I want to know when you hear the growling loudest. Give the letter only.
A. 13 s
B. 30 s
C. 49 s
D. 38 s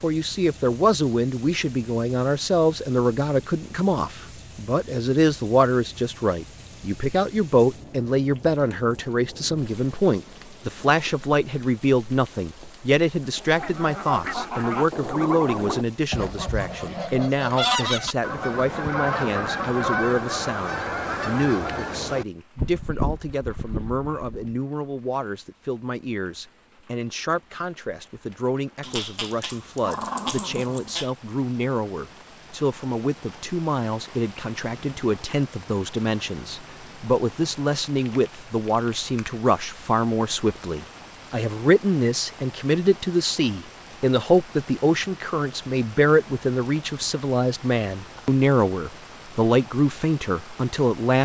B.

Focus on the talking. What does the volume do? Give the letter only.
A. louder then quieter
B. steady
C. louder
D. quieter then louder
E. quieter
D.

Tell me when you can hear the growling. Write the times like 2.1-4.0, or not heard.
28.8-31.1.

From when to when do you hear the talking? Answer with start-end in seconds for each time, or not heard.
0.0-51.2.